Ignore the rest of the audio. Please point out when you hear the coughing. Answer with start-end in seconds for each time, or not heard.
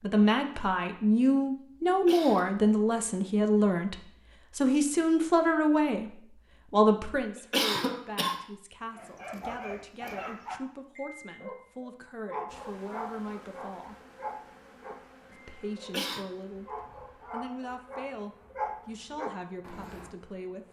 1.9-2.5, 7.3-8.4, 15.8-16.2.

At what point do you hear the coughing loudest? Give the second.
8 s.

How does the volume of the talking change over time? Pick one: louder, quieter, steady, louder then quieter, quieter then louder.
quieter.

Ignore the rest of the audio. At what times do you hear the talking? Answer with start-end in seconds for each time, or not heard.
0.0-13.9, 15.3-20.6.